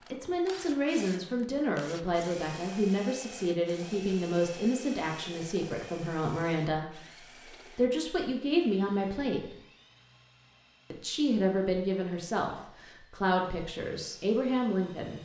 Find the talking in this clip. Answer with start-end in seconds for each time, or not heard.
0.1-9.6, 10.9-15.2.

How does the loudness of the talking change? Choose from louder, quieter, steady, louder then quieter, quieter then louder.
steady.